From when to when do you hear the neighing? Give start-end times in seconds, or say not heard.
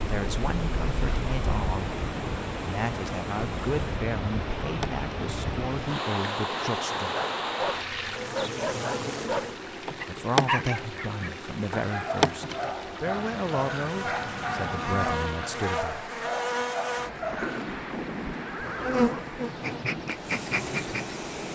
17.2-19.3.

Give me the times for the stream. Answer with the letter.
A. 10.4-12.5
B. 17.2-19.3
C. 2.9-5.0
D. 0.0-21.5
D.